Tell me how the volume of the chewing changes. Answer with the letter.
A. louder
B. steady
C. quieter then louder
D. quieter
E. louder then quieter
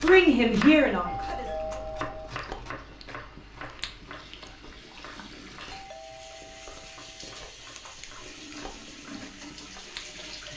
C.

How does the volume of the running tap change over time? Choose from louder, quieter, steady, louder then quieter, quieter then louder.
louder.